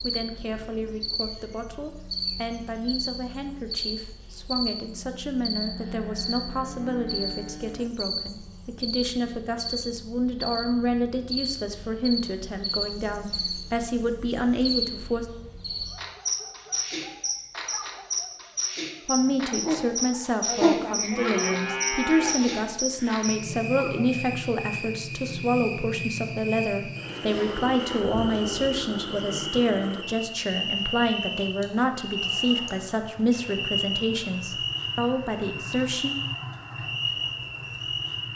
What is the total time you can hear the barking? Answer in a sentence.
The barking can be heard for 8 seconds in total.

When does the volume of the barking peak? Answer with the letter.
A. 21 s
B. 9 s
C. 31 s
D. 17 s
A.